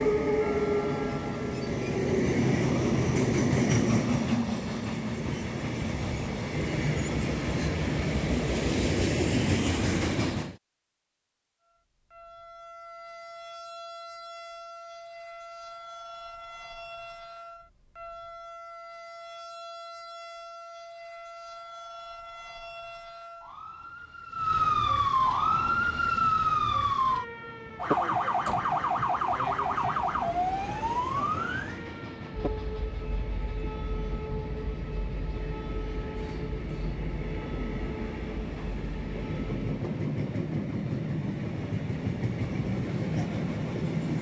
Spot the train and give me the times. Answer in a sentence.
The train can be heard from 0.0 to 10.6 s and from 25.2 to 44.1 s.